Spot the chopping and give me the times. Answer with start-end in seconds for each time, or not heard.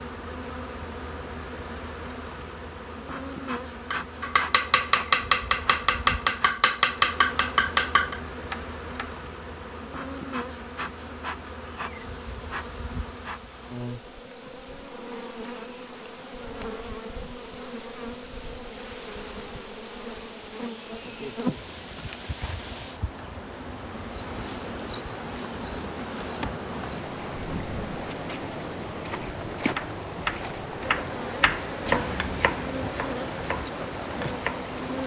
3.9-9.2, 29.7-34.8.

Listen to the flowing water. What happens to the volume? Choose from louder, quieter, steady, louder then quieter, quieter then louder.
louder.